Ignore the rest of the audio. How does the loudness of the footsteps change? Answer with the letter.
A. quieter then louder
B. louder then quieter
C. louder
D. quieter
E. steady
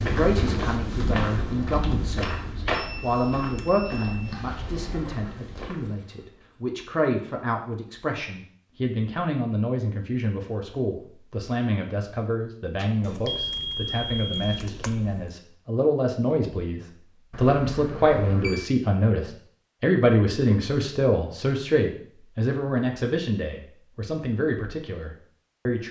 D.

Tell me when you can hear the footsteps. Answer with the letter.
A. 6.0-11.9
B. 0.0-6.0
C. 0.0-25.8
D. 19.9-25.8
B.